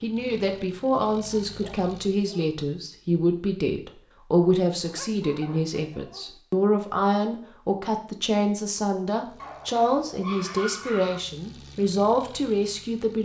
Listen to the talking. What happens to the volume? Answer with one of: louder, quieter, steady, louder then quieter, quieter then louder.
steady.